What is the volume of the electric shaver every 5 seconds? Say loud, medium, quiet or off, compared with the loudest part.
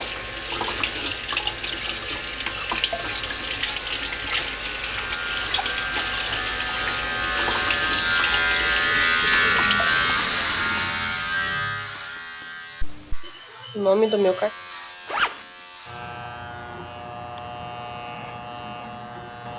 quiet, loud, medium, quiet.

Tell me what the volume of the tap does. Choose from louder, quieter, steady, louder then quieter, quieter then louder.
steady.